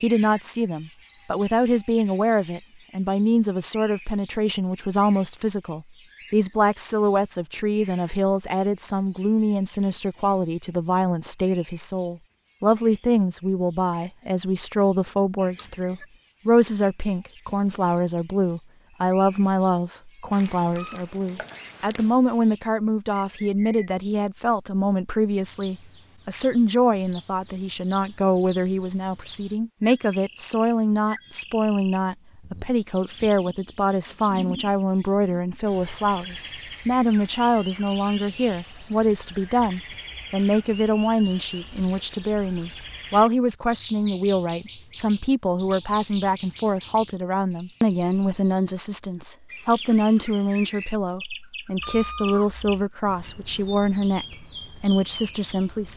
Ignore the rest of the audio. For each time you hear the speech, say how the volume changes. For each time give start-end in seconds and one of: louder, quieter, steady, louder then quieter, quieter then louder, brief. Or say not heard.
0.0-55.9 steady.